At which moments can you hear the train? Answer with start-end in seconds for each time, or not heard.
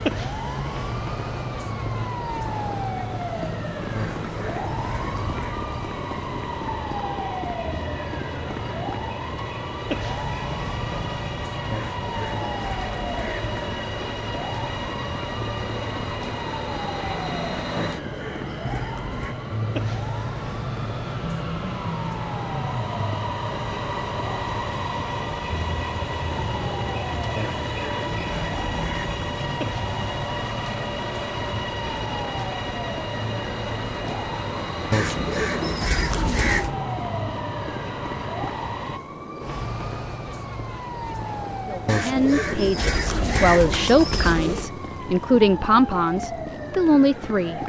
0.0-39.0.